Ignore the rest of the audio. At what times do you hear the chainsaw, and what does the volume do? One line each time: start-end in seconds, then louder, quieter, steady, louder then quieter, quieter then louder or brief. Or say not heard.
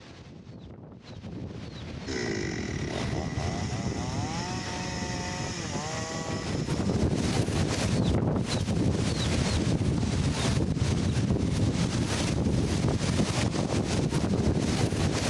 2.0-7.0 steady.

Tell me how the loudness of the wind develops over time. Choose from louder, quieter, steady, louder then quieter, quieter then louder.
louder.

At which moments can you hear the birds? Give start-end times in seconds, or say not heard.
not heard.